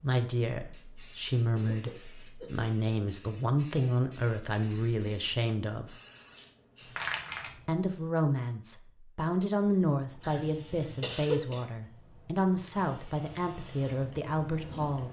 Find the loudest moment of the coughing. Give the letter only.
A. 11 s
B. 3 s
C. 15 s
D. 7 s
A.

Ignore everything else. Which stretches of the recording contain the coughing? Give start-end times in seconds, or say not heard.
1.6-2.7, 10.2-11.7.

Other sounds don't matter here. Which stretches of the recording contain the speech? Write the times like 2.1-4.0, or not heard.
0.0-6.0, 7.7-15.0.